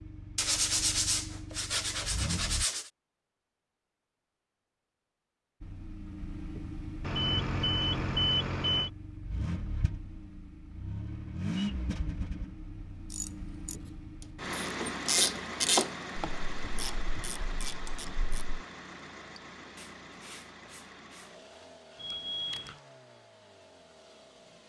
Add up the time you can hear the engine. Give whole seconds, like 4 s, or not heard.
22 s.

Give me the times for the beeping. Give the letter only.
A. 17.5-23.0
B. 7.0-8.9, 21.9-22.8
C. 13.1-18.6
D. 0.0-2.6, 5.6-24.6
B.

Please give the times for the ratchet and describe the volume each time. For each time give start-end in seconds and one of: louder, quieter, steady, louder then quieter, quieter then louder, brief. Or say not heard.
13.1-18.6 louder then quieter.